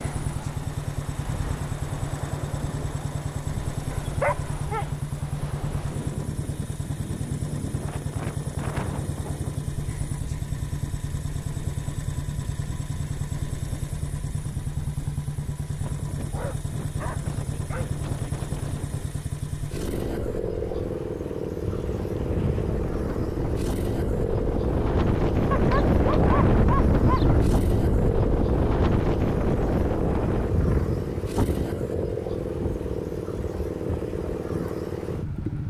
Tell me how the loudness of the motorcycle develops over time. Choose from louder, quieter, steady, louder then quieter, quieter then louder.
steady.